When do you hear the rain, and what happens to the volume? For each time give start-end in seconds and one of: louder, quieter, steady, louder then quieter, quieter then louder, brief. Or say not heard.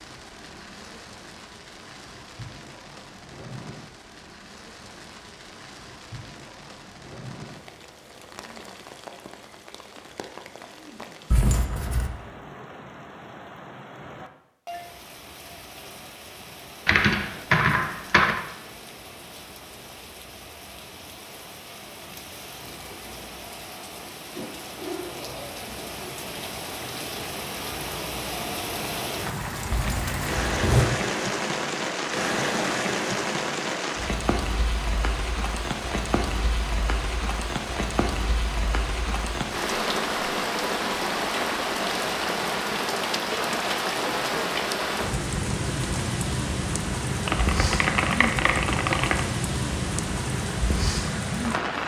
0.0-51.8 louder.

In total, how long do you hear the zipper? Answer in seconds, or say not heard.
2 s.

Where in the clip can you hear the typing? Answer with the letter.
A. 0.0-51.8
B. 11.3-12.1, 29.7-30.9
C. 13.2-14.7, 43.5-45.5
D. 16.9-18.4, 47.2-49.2
D.